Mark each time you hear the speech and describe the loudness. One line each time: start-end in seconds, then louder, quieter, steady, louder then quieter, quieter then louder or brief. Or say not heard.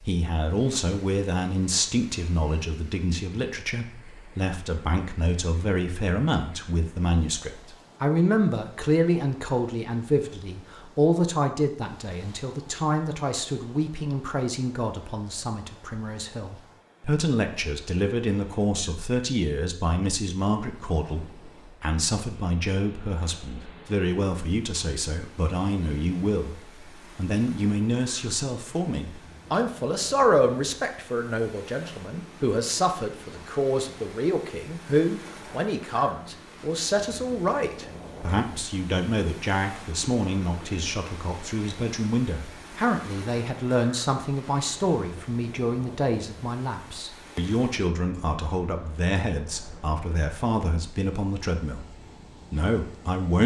0.0-51.9 steady
52.5-53.4 brief.